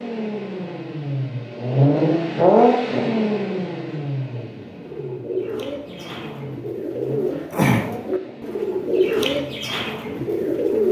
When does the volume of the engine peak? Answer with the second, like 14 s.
2 s.